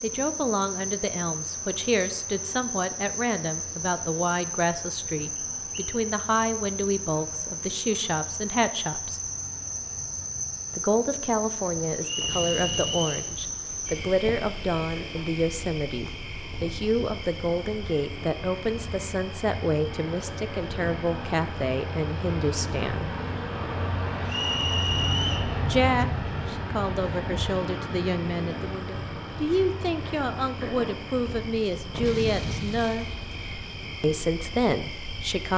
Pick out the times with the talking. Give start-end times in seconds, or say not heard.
0.0-9.2, 10.8-23.1, 25.6-33.0, 34.0-35.5.